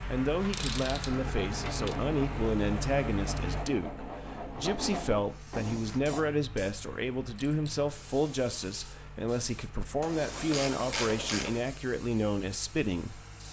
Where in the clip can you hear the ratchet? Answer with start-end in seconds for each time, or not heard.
0.4-2.0, 10.0-11.7.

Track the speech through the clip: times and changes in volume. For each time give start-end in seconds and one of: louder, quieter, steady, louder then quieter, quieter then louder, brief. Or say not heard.
0.0-13.4 steady.